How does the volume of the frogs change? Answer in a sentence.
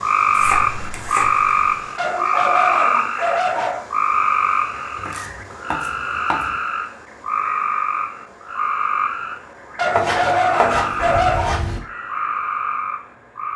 The volume of the frogs goes down.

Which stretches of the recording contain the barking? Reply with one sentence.
You can hear the barking from 1.9 to 3.9 s and from 9.8 to 11.6 s.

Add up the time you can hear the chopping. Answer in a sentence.
The chopping can be heard for 5 seconds in total.